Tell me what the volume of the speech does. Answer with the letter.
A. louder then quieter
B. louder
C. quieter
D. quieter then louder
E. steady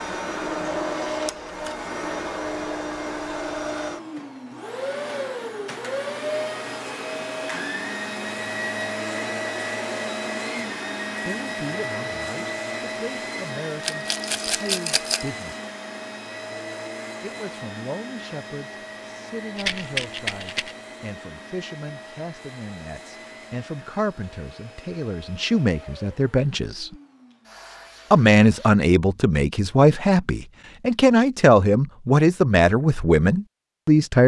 B.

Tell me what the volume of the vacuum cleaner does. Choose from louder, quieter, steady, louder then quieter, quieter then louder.
quieter.